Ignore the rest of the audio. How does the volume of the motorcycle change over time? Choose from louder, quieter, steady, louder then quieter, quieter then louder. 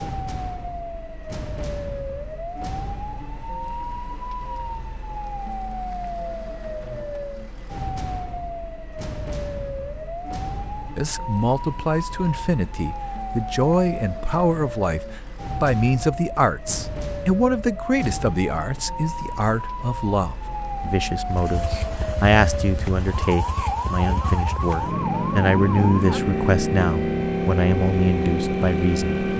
louder.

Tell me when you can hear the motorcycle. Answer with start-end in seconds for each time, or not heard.
21.2-29.3.